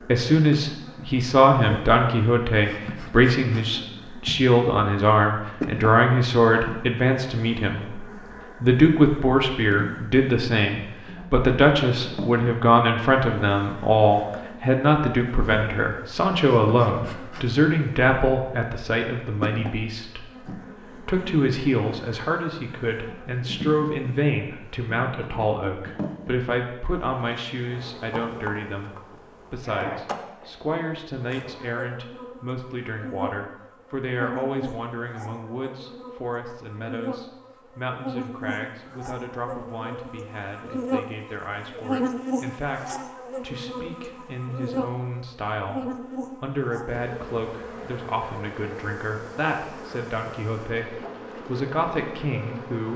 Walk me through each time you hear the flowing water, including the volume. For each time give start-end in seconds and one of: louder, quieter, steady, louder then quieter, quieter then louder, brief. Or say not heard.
not heard.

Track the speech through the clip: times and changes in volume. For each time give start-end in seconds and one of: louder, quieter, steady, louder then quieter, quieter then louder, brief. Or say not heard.
0.1-52.9 quieter.